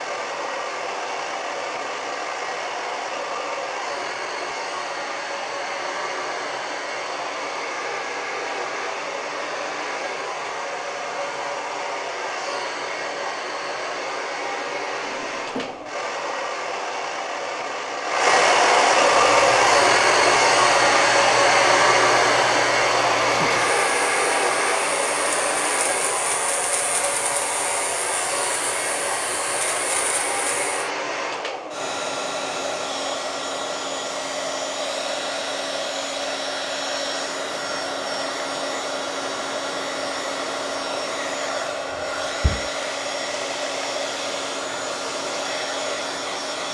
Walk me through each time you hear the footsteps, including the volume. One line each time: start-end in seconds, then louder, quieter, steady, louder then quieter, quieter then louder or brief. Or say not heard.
not heard.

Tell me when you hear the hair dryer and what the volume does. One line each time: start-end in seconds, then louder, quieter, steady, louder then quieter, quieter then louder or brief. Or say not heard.
0.0-46.6 louder then quieter.